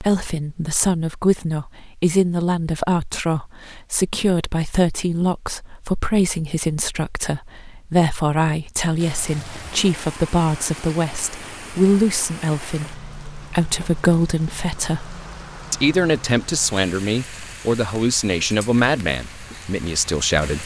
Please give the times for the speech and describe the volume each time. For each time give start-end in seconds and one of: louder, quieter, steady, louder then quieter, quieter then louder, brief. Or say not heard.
0.0-20.6 steady.